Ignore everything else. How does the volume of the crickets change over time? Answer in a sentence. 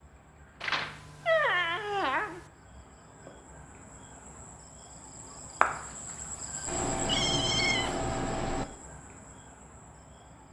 The loudness of the crickets goes up, then down.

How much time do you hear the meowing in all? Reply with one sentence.
The meowing can be heard for 4 seconds in total.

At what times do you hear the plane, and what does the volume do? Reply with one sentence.
The plane can't be heard in this clip.